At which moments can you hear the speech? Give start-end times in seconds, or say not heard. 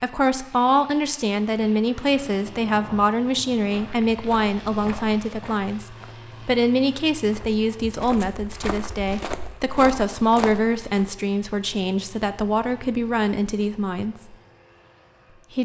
0.0-14.3.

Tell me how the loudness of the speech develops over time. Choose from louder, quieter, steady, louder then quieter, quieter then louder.
steady.